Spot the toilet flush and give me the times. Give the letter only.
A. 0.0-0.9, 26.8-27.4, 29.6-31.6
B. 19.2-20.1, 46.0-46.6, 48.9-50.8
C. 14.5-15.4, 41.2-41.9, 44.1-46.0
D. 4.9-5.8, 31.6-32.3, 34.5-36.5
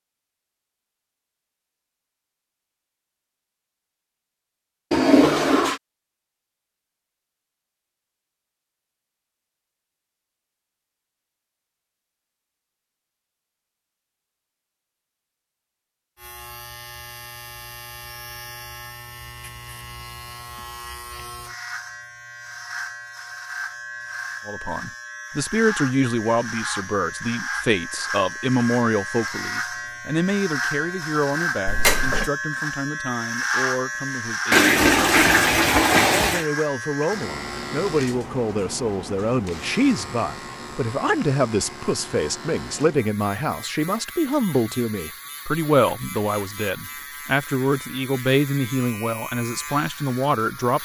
D.